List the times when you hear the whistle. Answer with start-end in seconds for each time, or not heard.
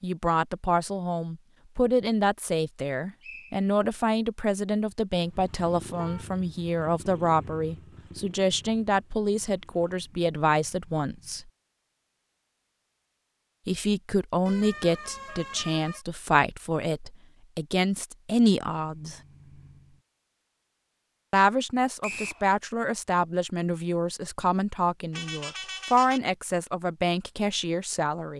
3.2-3.7, 22.0-22.4.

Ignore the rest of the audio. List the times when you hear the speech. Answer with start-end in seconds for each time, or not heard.
0.0-11.4, 13.7-19.2, 21.3-28.3.